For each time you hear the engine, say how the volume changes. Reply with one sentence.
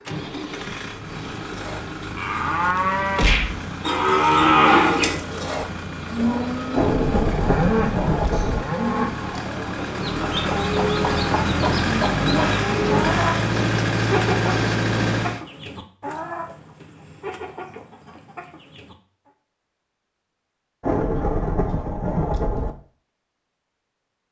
You can hear the engine from 0.0 to 15.4 s, getting louder.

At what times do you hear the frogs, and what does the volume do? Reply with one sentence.
The frogs can't be heard in this clip.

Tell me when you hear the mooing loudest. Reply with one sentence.
The volume of the mooing peaks at 5 seconds.